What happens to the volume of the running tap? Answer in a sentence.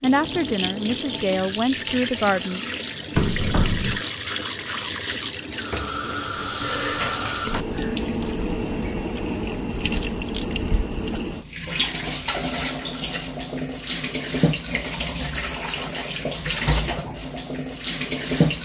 The loudness of the running tap stays about the same.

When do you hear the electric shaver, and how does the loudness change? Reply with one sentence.
You can't hear the electric shaver here.